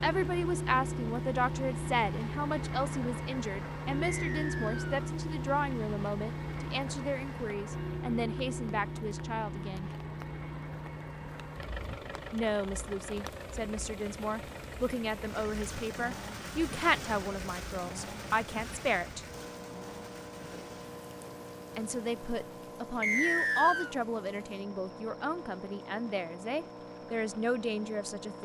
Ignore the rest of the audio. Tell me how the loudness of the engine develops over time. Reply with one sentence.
The volume of the engine goes down.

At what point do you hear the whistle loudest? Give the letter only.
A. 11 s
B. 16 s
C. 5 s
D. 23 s
D.